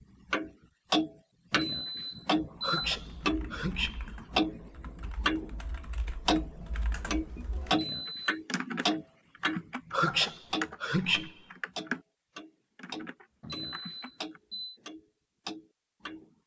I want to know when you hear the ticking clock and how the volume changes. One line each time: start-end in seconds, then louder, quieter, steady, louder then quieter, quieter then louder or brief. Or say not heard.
0.3-5.5 quieter then louder
6.2-16.4 quieter.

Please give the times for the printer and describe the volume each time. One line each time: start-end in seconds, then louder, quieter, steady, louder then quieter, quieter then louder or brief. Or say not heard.
not heard.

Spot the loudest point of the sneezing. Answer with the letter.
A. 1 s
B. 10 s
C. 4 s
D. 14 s
B.